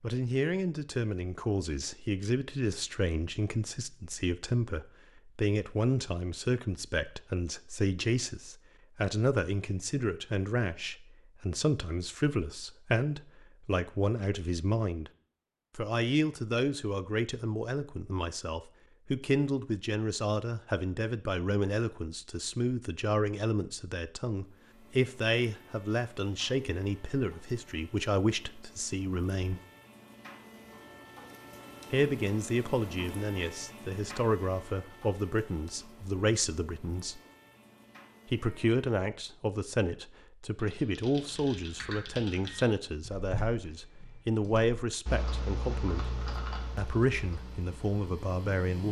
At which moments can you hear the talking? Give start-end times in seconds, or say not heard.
0.0-15.1, 15.8-29.6, 31.9-37.2, 38.2-46.1, 46.8-48.8.